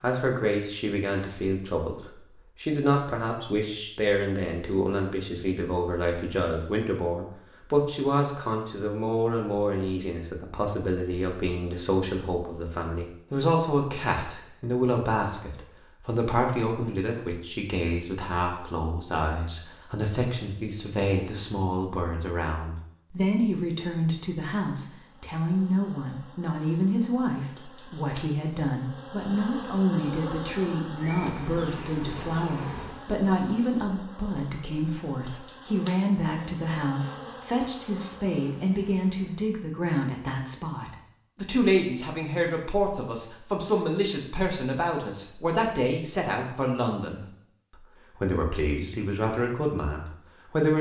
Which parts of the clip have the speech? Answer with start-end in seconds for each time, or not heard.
0.0-50.7.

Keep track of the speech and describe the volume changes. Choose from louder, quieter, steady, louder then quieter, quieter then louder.
steady.